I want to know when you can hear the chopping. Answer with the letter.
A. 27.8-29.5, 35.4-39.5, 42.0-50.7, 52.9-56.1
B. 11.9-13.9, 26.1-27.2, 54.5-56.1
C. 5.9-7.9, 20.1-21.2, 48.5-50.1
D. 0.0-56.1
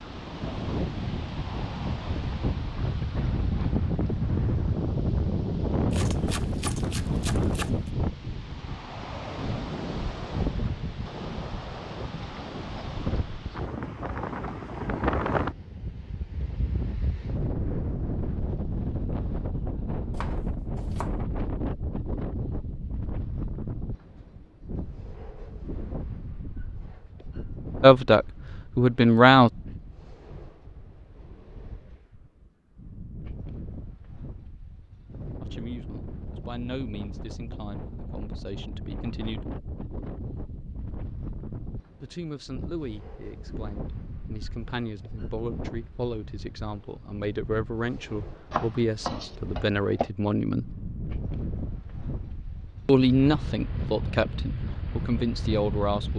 C.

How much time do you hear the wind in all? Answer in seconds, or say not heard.
56 s.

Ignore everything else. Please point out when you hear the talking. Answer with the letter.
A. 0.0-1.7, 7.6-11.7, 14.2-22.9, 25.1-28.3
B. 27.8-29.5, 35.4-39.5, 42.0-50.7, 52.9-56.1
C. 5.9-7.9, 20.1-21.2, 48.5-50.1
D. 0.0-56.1
B.